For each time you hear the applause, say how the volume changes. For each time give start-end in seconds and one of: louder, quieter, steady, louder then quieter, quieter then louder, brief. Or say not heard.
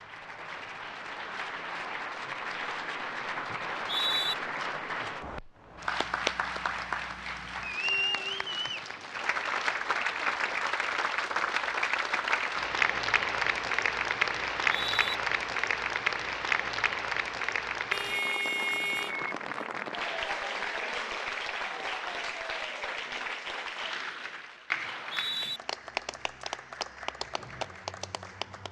0.0-28.6 louder then quieter.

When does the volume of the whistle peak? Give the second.
4 s.